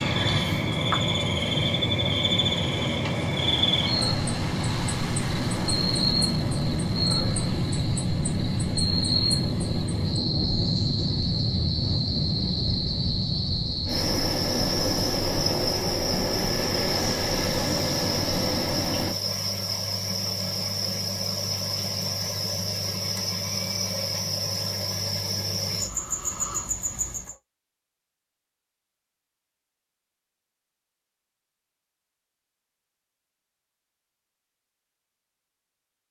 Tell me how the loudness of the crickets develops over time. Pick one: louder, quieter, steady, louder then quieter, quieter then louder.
steady.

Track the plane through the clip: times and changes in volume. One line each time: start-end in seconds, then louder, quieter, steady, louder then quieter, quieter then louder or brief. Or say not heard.
0.0-19.1 steady.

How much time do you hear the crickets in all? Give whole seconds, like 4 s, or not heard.
27 s.